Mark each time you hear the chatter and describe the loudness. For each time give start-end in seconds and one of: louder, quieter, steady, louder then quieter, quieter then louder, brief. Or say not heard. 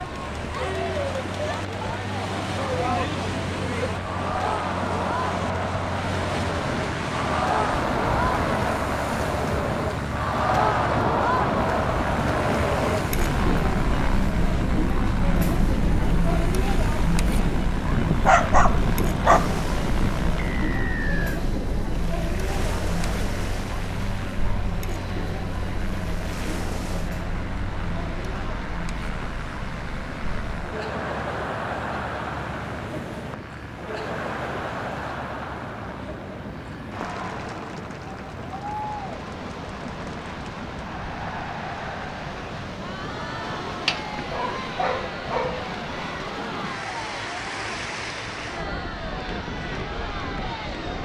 0.0-51.0 quieter.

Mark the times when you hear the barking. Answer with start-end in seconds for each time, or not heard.
17.9-20.2, 43.6-45.6.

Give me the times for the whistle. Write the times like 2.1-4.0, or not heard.
20.4-21.4.